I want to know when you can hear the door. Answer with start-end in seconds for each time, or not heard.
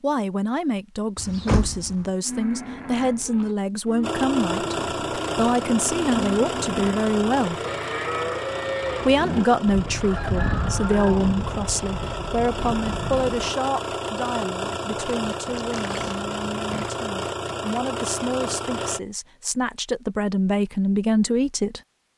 1.1-2.0, 15.5-16.9.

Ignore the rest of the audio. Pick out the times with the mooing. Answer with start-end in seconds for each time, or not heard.
2.2-13.5.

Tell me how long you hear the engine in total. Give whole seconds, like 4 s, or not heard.
15 s.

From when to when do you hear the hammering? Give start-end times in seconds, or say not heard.
not heard.